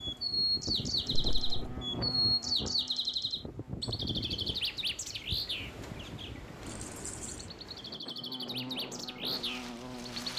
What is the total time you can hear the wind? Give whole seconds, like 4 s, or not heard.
10 s.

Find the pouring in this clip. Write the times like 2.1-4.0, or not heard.
1.1-1.8, 6.7-7.5.